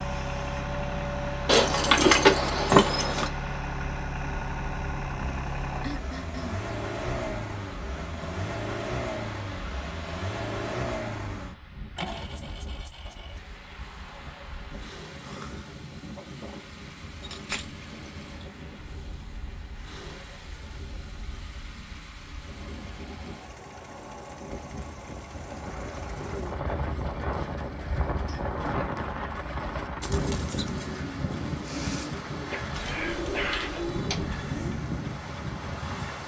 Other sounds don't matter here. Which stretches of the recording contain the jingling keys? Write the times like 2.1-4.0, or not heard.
1.4-3.3, 17.2-18.1, 32.6-34.4.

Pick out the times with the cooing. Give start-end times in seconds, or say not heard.
26.2-34.6.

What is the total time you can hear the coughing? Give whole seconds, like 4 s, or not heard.
3 s.